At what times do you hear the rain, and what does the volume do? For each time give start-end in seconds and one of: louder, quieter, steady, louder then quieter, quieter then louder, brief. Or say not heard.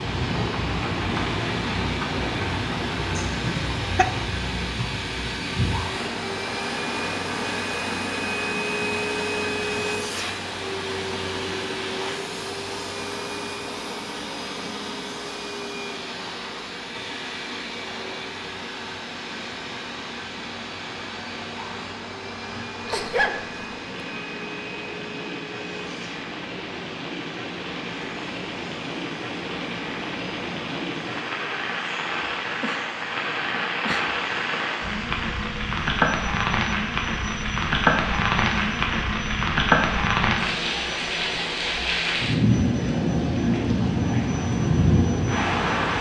0.0-45.9 quieter then louder.